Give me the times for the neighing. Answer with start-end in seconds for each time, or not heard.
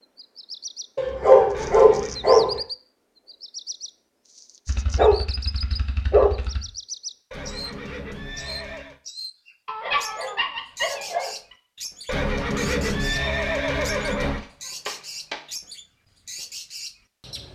1.5-2.2, 7.3-9.0, 12.1-14.4.